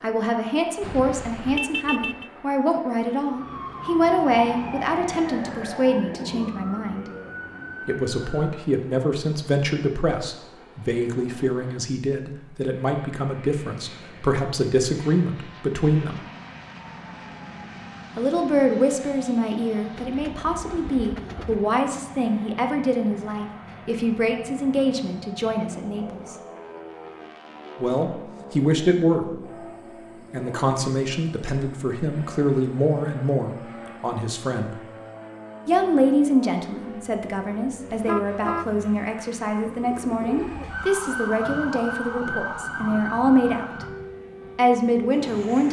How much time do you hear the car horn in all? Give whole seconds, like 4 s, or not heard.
2 s.